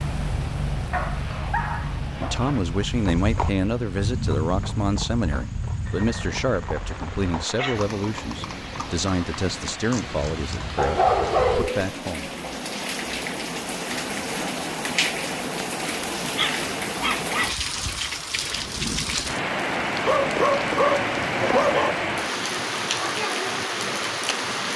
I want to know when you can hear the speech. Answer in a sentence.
The speech can be heard from 2.2 to 12.3 s.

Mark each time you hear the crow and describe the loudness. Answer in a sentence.
The crow can't be heard in this clip.